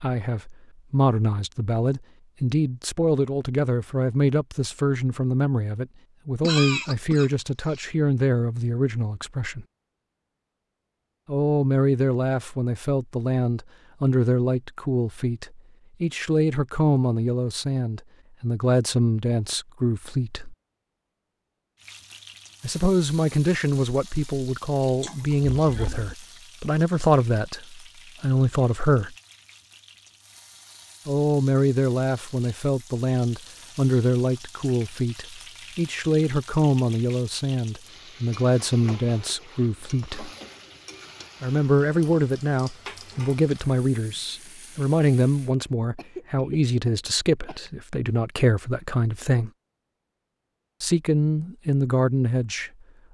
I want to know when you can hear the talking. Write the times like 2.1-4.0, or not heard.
0.0-9.7, 11.2-20.6, 22.6-29.1, 31.1-40.3, 41.4-49.5, 50.8-52.7.